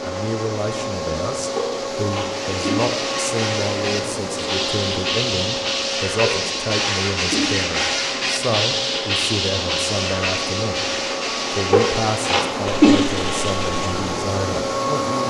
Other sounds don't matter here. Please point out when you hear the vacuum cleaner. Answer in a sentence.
The vacuum cleaner can be heard from 0.0 to 15.2 s.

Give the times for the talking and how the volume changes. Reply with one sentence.
The talking can be heard from 0.0 to 15.2 s, at a steady volume.